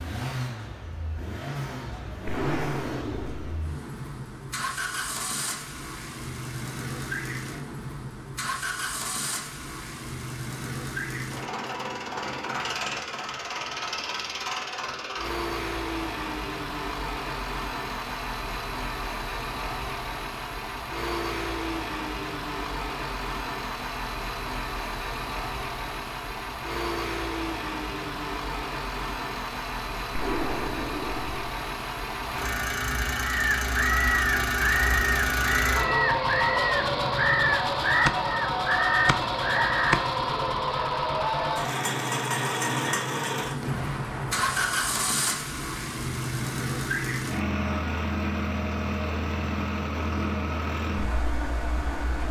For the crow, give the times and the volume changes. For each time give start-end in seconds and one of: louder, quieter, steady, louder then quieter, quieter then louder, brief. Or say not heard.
33.2-40.1 steady.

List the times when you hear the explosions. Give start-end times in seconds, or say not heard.
2.2-3.6, 30.1-31.4, 43.6-45.1.